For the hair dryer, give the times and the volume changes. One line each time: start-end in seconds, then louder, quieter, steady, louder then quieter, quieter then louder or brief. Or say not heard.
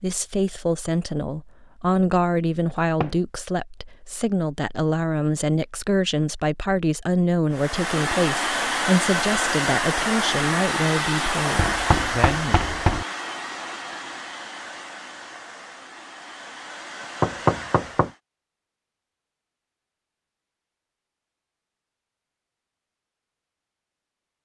7.5-18.2 quieter.